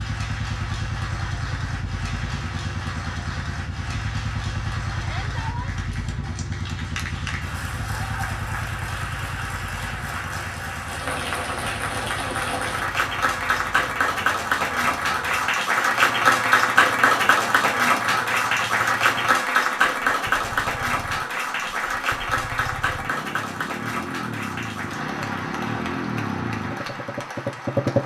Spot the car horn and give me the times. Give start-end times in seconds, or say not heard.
not heard.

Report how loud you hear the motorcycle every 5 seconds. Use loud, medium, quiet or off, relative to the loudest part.
medium, medium, quiet, quiet, medium, loud.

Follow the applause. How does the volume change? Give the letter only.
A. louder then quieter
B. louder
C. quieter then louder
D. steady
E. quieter
A.